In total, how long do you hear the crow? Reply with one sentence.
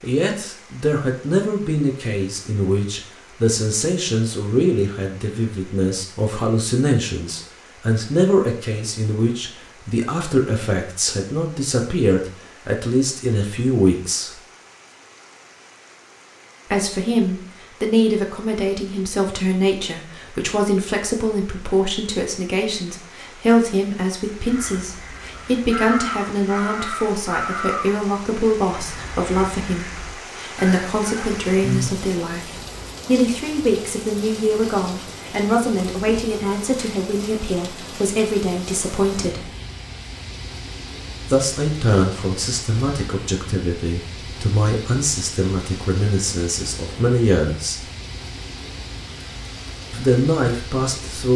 You can hear the crow for 8 seconds altogether.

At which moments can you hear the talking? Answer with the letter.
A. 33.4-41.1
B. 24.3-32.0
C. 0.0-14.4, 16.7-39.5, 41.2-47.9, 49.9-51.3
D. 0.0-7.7
C.